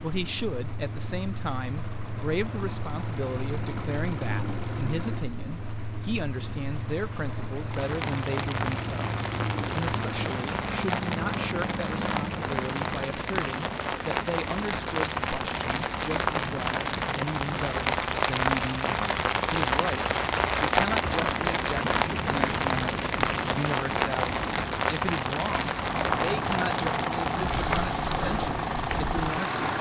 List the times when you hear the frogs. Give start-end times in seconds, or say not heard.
not heard.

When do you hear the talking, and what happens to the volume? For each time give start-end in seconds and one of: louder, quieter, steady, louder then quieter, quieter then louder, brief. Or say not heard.
0.0-29.6 steady.